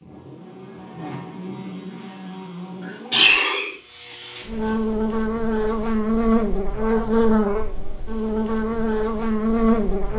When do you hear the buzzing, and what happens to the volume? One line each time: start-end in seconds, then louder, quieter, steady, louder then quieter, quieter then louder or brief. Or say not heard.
0.0-10.1 louder.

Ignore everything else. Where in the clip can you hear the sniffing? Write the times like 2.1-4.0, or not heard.
2.9-3.8.